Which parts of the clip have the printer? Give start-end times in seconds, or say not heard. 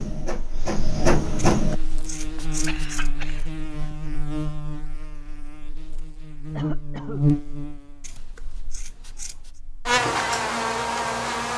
0.0-1.8.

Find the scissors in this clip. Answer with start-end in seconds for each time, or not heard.
1.4-3.1, 8.0-9.6.